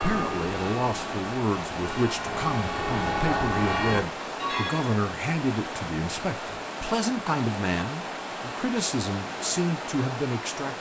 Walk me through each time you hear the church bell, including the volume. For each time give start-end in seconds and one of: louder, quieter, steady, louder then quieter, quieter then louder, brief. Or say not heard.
0.0-5.0 louder.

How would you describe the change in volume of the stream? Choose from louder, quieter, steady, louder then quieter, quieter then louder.
steady.